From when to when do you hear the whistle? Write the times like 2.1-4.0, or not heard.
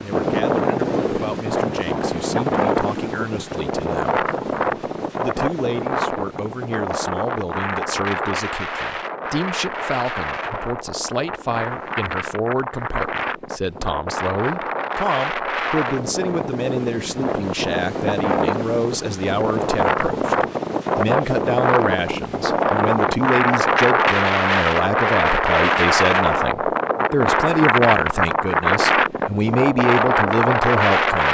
not heard.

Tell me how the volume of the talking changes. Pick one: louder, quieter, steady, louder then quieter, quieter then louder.
louder.